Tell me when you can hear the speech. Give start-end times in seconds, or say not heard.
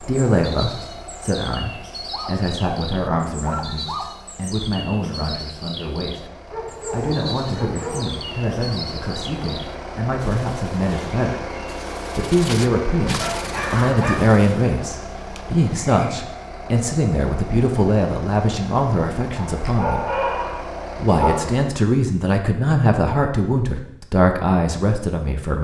0.0-11.4, 12.2-20.2, 20.9-25.6.